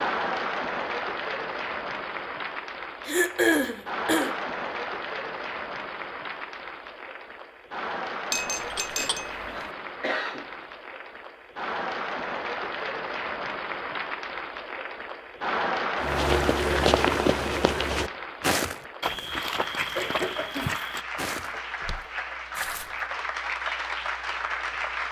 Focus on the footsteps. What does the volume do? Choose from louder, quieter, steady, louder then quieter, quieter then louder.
quieter.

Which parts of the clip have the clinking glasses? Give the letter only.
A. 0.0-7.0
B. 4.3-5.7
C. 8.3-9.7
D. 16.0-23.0
C.